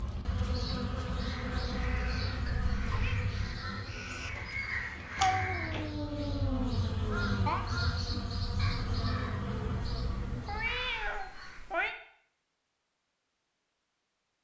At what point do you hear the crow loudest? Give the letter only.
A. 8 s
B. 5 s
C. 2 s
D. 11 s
B.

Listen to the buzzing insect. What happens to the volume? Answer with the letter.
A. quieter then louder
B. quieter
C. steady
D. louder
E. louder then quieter
A.